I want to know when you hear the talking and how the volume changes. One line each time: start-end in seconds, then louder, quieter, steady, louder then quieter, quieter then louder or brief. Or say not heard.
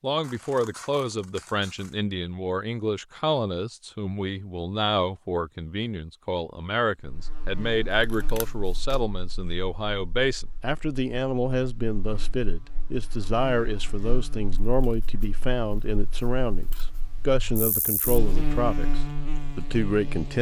0.0-20.3 steady.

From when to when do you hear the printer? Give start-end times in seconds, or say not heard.
not heard.